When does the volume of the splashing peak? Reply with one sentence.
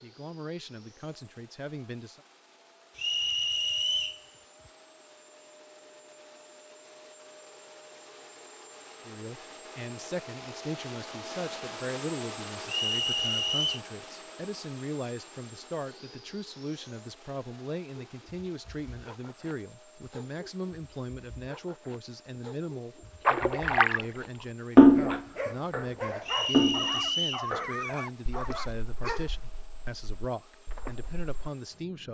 The loudest moment of the splashing is at 25 seconds.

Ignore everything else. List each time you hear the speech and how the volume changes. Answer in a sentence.
The speech can be heard briefly from 0.0 to 2.2 s; and from 9.1 to 32.0 s, at a steady volume.